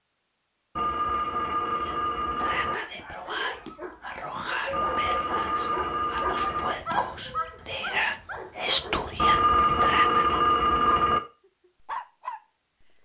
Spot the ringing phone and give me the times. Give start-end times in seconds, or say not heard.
0.8-2.8, 4.7-6.8, 9.2-11.2.